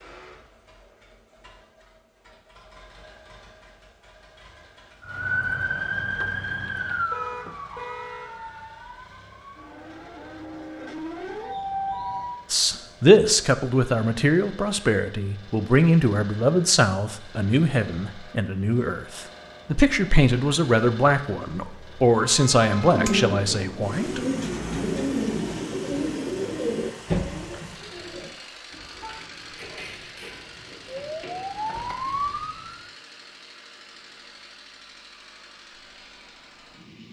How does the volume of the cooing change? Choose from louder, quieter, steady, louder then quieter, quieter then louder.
quieter.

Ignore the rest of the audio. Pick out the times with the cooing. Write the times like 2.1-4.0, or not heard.
22.9-32.4.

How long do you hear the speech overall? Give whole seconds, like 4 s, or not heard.
12 s.